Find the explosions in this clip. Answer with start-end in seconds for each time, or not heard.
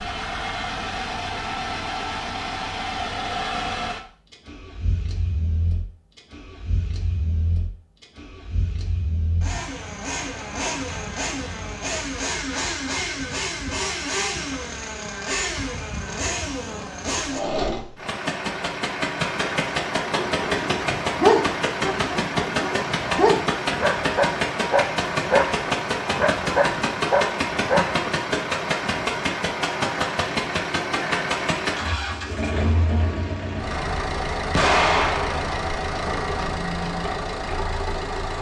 34.5-35.5.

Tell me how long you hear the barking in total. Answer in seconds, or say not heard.
8 s.